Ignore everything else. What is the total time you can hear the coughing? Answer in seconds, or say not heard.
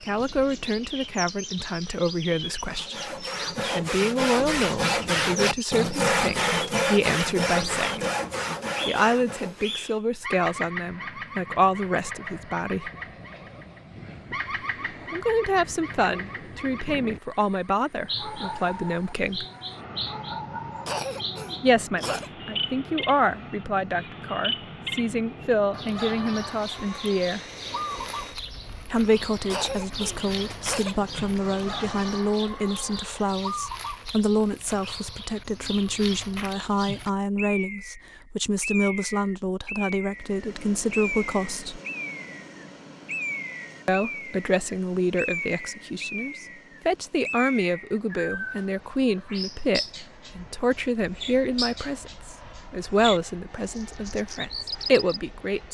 3 s.